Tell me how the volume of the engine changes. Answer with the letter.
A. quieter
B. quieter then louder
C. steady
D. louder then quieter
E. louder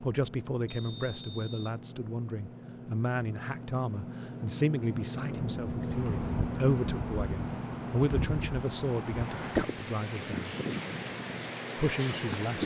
D.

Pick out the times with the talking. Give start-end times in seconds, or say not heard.
0.0-10.4, 11.8-12.6.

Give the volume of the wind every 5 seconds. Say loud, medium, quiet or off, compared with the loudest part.
off, loud, loud.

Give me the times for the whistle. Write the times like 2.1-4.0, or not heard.
0.7-1.8.